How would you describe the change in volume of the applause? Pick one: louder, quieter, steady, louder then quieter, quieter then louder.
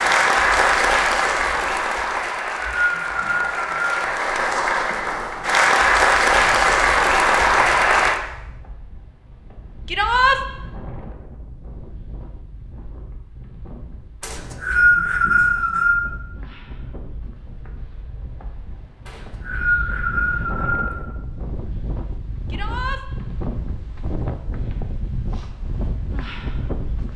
quieter then louder.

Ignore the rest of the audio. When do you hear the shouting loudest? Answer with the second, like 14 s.
10 s.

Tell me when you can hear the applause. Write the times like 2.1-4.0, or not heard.
0.0-8.2.